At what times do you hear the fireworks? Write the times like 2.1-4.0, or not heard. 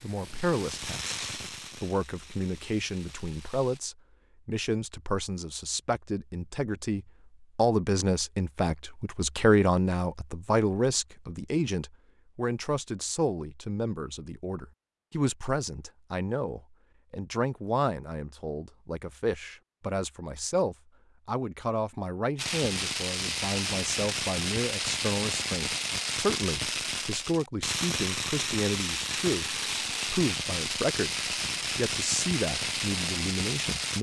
0.0-3.8, 22.4-33.9.